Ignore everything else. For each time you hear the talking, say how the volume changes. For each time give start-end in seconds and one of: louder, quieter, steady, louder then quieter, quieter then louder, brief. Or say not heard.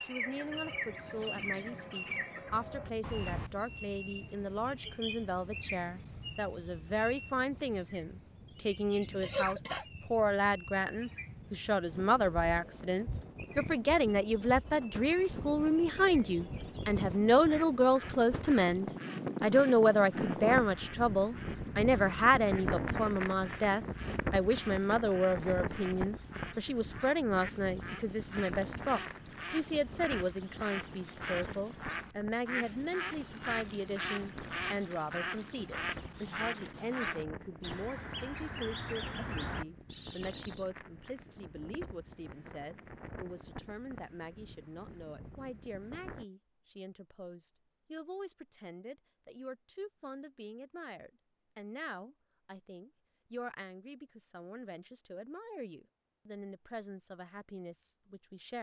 0.1-58.5 louder then quieter.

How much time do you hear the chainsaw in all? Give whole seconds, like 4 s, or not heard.
not heard.